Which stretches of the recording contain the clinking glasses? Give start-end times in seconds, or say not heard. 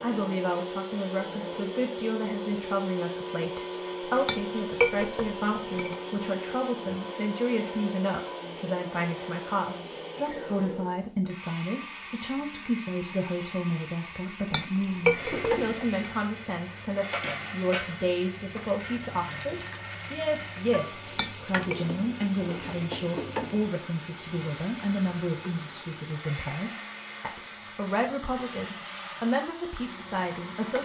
4.0-6.0, 14.4-16.1, 20.9-21.8.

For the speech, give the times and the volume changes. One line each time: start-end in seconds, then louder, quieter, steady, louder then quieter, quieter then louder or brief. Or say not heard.
0.0-30.8 steady.